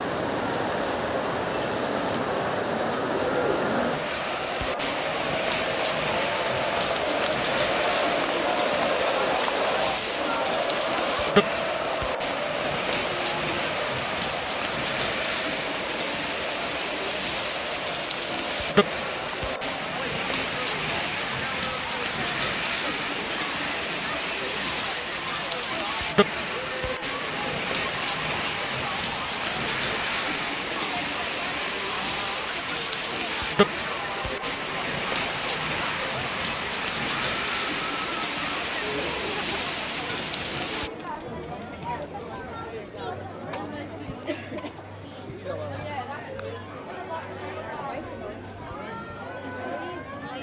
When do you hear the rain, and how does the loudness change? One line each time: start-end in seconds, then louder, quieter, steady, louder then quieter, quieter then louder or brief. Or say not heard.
0.0-40.9 steady.